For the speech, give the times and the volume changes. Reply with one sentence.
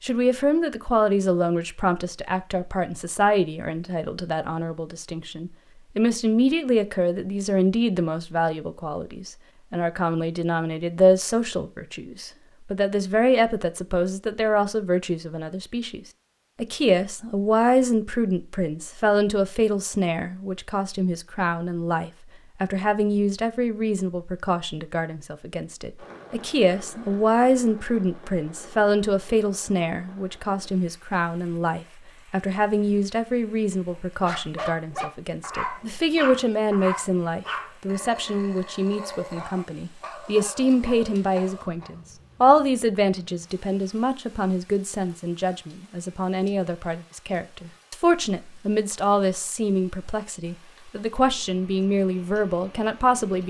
The speech can be heard from 0.0 to 53.4 s, at a steady volume.